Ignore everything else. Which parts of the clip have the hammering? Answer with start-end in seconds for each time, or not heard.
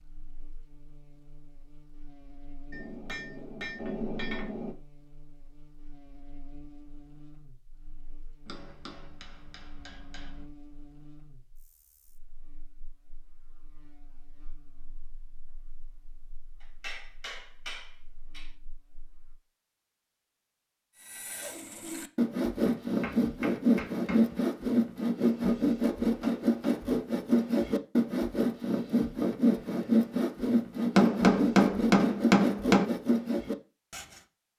2.7-4.8, 8.4-10.4, 16.6-18.5, 22.6-24.4, 30.9-32.9.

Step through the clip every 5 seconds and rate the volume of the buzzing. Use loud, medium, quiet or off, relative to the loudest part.
loud, loud, loud, quiet, off, off, off.